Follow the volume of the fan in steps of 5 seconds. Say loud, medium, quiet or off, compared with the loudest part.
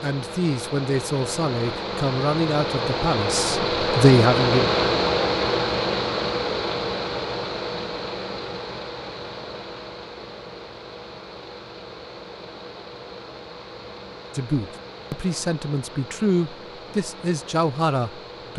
loud, loud, quiet, quiet.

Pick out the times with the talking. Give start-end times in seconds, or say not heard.
0.0-4.7, 14.3-18.5.